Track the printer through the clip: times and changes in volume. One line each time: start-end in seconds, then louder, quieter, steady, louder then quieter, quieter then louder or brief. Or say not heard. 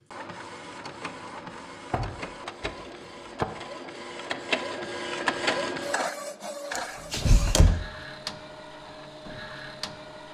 0.0-10.2 louder then quieter.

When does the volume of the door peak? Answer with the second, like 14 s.
7 s.